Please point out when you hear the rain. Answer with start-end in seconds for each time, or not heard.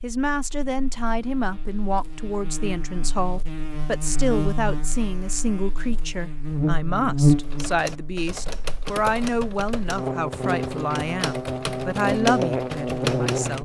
not heard.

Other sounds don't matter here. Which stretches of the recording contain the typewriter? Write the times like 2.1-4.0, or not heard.
7.4-13.6.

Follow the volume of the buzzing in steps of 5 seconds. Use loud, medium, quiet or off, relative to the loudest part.
medium, loud, loud.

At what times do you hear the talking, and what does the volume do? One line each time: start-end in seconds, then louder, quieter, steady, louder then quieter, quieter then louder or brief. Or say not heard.
0.0-13.6 steady.